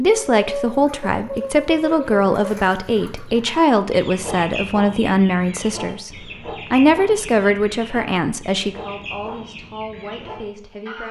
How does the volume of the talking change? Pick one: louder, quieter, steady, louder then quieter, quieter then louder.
quieter.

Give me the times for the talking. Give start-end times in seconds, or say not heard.
0.0-6.1, 6.7-11.0.